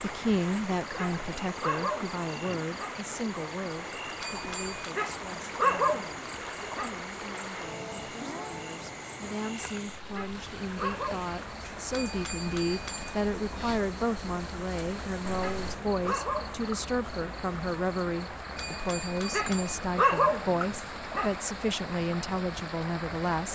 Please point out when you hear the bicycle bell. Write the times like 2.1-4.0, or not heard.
4.2-5.0, 11.9-13.9, 18.6-19.8.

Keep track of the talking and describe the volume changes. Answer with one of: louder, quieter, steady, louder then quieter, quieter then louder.
quieter then louder.